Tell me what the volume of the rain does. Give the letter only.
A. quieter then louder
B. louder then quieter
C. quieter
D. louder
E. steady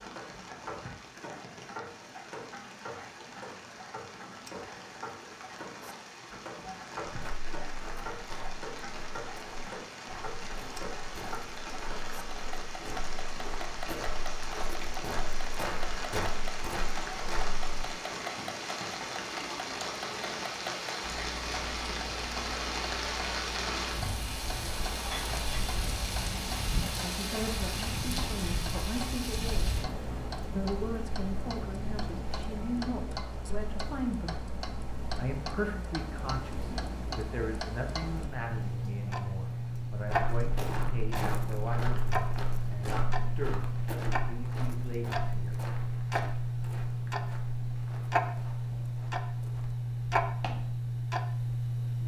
B.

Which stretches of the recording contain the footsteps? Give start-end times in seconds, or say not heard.
7.0-17.6, 40.0-50.8.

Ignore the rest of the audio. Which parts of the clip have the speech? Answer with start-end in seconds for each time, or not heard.
26.9-29.8, 30.5-34.5, 35.1-45.5.